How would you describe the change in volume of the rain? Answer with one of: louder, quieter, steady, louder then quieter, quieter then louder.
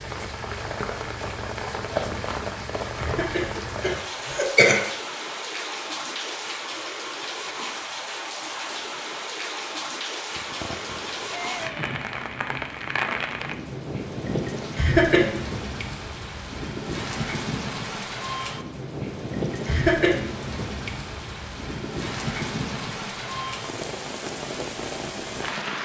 steady.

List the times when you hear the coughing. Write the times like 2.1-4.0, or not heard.
3.0-4.9, 14.8-15.2, 19.6-20.1.